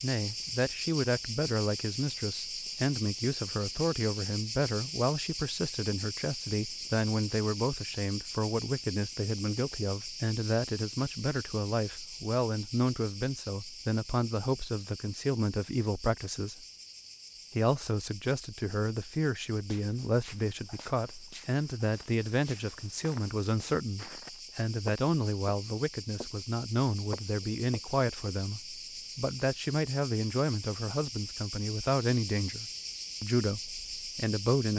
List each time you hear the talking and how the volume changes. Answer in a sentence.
You can hear the talking from 0.0 to 16.6 s, at a steady volume; and from 17.6 to 34.7 s, at a steady volume.